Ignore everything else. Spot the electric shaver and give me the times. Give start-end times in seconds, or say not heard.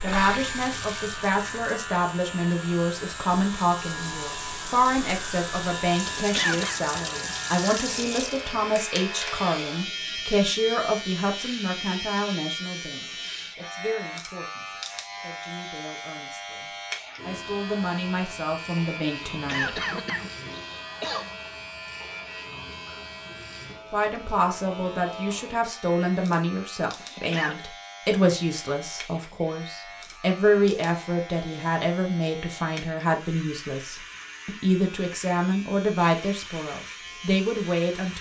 0.0-38.1.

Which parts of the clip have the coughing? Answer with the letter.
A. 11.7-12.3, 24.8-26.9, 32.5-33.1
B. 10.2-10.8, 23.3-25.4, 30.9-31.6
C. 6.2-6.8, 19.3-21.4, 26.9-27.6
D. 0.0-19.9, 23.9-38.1
C.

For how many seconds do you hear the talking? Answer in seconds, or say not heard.
34 s.